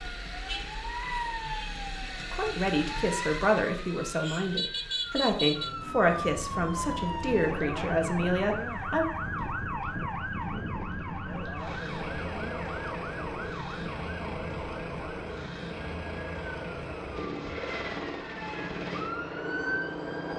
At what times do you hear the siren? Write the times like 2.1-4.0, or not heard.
0.0-20.3.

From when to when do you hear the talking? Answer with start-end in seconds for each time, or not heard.
2.0-9.1.